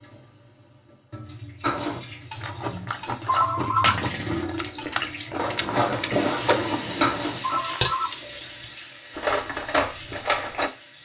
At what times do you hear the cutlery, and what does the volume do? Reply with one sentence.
You can hear the cutlery from 1.6 to 10.7 s, getting louder.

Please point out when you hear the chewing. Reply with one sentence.
The chewing can be heard from 2.3 to 7.8 s.